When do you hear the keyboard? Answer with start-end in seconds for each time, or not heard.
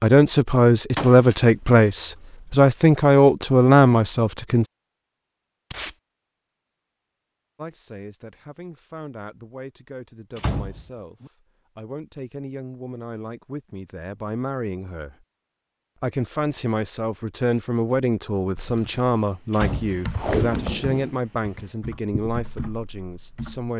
18.6-23.7.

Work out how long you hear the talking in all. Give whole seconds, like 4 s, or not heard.
20 s.